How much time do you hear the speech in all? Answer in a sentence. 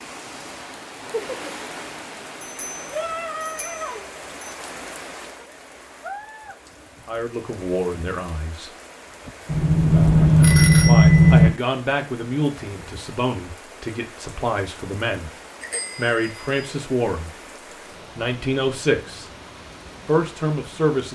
The speech can be heard for 10 seconds in total.